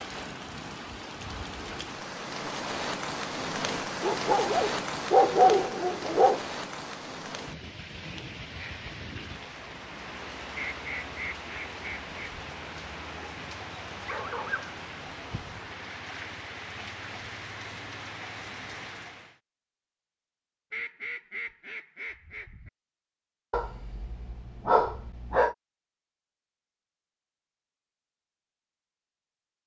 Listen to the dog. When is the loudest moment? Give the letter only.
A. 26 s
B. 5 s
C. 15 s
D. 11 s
B.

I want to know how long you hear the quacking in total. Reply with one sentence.
The quacking can be heard for 4 seconds in total.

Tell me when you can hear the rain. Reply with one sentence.
You can hear the rain from 0.0 to 19.4 s.